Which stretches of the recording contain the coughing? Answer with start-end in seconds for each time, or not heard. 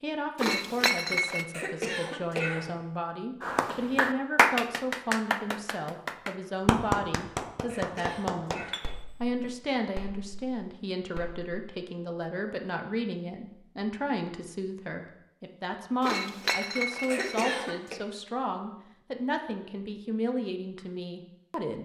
1.5-2.8, 7.7-8.8, 17.1-17.9.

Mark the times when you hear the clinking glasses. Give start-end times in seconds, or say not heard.
0.3-1.4, 8.7-9.5, 16.0-17.5.